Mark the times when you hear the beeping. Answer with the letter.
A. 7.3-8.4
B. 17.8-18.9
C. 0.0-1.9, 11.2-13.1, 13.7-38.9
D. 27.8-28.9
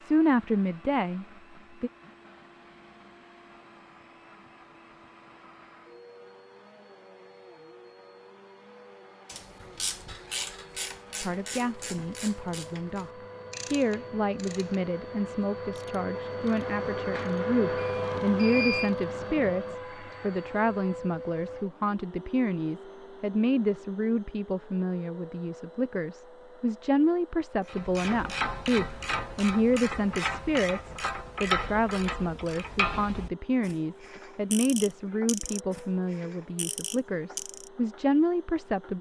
B.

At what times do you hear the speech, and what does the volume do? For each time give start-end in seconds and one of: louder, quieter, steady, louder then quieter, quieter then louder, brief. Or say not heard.
0.0-1.9 brief
11.2-13.1 brief
13.7-38.9 steady.